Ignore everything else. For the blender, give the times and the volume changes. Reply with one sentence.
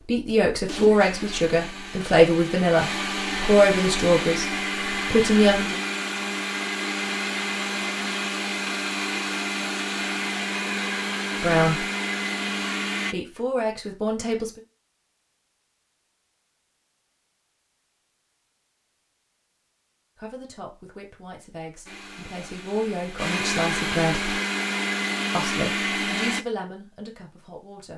You can hear the blender from 0.0 to 13.2 s, getting louder; and from 21.9 to 26.4 s, getting louder.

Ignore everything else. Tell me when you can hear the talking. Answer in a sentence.
The talking can be heard from 0.0 to 5.8 s, from 11.4 to 11.8 s, from 13.1 to 14.6 s, from 20.1 to 24.4 s and from 25.3 to 27.9 s.